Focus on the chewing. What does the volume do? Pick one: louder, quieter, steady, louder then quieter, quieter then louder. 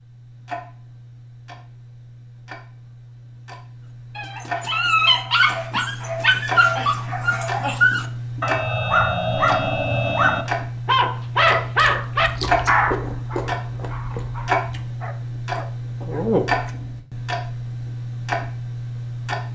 quieter then louder.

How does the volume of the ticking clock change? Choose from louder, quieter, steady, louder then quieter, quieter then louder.
louder.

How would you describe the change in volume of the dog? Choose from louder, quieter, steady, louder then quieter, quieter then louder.
quieter.